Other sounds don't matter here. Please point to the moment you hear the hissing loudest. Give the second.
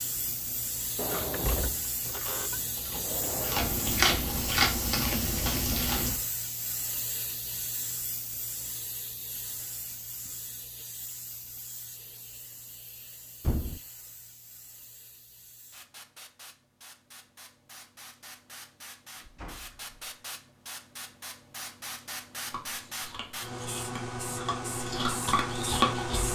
26 s.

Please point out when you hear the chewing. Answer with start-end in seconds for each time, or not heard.
0.0-6.2, 22.4-26.3.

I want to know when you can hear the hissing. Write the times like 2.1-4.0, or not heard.
0.0-26.3.